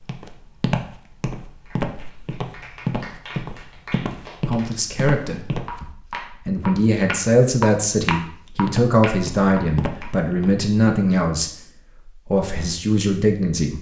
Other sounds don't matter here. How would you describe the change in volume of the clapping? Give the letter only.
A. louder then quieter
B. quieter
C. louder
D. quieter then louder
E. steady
C.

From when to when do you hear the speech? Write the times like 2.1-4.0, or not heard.
4.5-13.7.